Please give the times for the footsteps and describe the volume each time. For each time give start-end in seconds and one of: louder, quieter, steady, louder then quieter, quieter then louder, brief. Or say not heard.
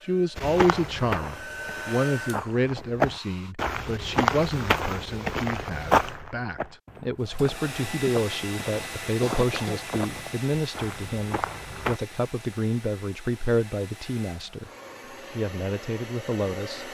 0.3-12.0 louder then quieter.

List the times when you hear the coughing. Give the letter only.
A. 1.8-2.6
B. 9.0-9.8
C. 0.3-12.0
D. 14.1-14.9
B.